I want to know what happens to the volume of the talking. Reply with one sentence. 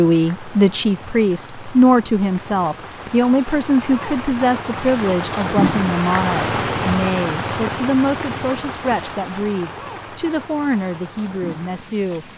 The loudness of the talking goes down.